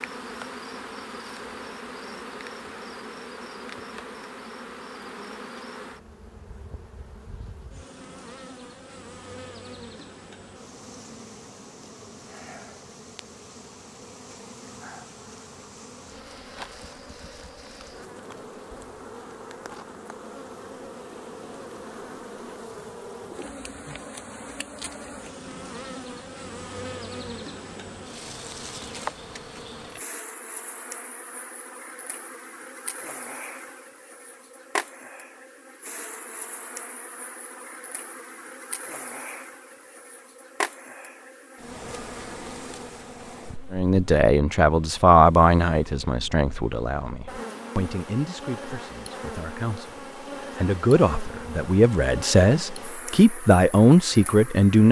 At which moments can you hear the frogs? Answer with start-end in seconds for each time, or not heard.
not heard.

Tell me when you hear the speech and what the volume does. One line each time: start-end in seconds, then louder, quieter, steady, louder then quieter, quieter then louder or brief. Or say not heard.
43.7-54.8 quieter then louder.